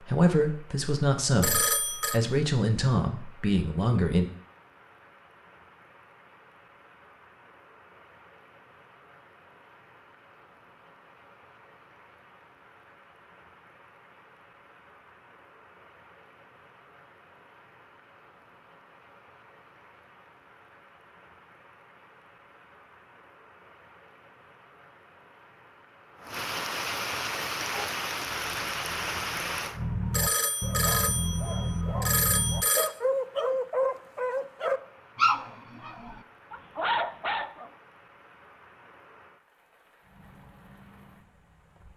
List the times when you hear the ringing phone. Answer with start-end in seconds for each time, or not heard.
1.4-2.2, 30.1-32.9.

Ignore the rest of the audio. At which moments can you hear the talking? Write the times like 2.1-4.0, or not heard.
0.0-4.2.